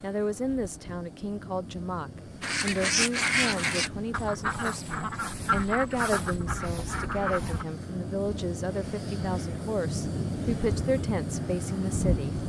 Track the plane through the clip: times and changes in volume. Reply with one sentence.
The plane can be heard from 0.0 to 12.4 s, getting louder.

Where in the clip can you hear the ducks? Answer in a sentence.
You can hear the ducks from 2.4 to 7.7 s.